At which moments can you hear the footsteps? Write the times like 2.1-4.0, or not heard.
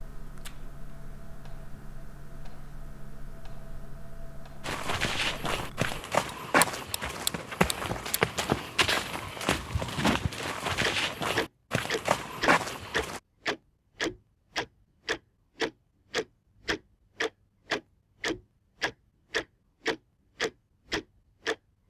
4.6-13.2.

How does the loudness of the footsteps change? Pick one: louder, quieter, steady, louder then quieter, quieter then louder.
steady.